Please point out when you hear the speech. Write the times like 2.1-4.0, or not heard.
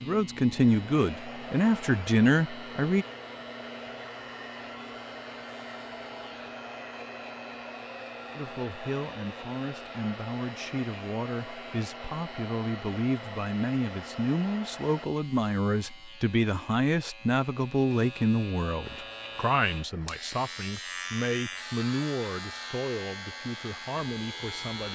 0.0-3.0, 8.3-24.9.